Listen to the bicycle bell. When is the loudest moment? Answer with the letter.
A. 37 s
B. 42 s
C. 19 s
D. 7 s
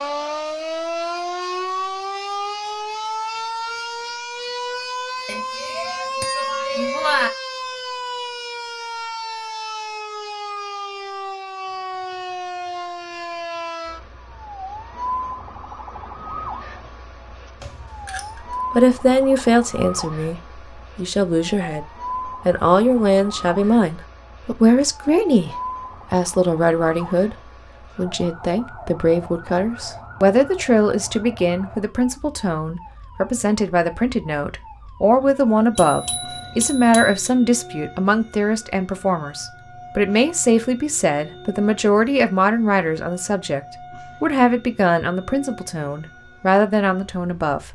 D.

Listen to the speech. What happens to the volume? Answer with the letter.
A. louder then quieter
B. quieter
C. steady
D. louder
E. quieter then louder
C.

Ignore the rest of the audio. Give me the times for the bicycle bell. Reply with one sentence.
The bicycle bell can be heard from 5.2 to 7.3 s, from 17.6 to 18.6 s and from 35.8 to 37.2 s.